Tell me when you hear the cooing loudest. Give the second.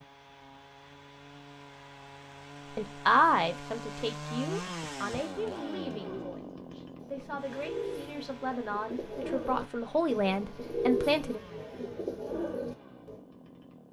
11 s.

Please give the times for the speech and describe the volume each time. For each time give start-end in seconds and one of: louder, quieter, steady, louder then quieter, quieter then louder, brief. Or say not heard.
2.8-11.4 quieter then louder.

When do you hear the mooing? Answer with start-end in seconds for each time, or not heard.
not heard.